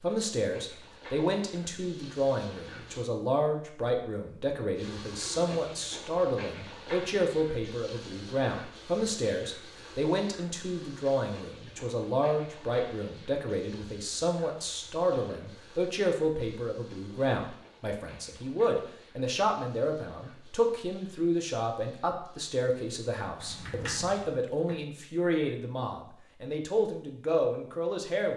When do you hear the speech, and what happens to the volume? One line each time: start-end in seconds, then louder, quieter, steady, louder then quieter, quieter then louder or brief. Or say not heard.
0.0-28.3 steady.